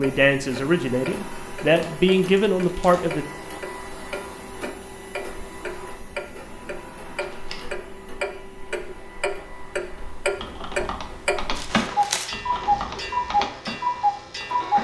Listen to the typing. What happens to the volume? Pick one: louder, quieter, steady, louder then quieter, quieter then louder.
louder then quieter.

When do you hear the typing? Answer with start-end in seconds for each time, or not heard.
10.4-14.7.